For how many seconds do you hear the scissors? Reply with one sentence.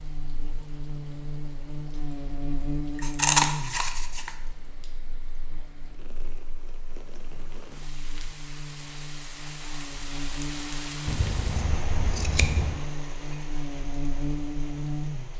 You can hear the scissors for 3 seconds altogether.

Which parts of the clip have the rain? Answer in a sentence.
You can hear the rain from 0.0 to 15.3 s.